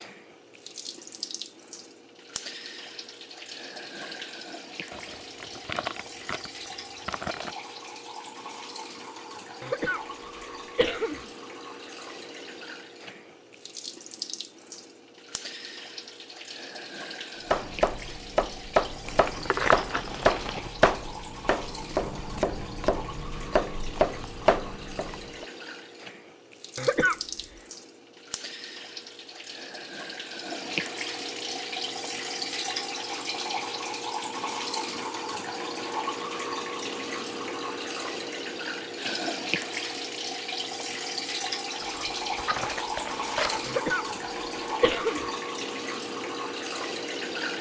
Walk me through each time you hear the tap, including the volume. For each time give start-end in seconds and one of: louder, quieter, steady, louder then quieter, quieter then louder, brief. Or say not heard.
0.0-47.5 louder.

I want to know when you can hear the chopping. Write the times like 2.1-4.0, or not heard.
17.5-25.4.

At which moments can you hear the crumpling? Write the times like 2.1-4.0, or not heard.
4.9-7.5, 19.1-20.7, 41.8-43.8.